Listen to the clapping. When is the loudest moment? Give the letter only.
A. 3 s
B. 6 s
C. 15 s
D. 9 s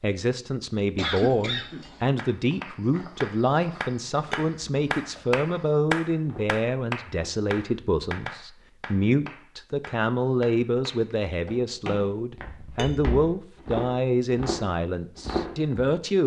B.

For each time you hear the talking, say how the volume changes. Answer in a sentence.
You can hear the talking from 0.0 to 16.2 s, at a steady volume.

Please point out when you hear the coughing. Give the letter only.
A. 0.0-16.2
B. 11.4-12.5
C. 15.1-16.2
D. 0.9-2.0
D.